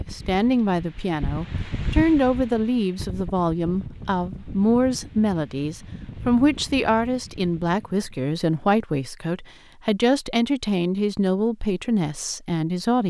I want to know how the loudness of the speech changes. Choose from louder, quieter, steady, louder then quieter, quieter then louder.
steady.